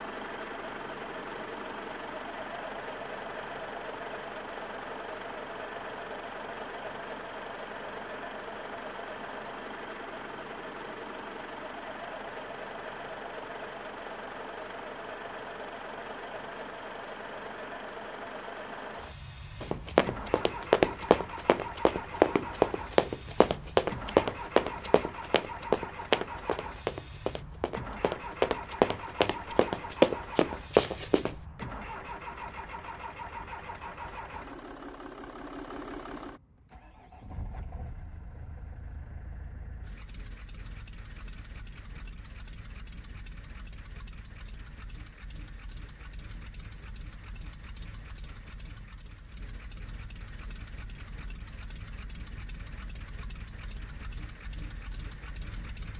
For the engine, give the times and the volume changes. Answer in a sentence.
You can hear the engine from 0.0 to 55.9 s, getting quieter.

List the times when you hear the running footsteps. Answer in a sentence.
The running footsteps can be heard from 19.6 to 31.4 s.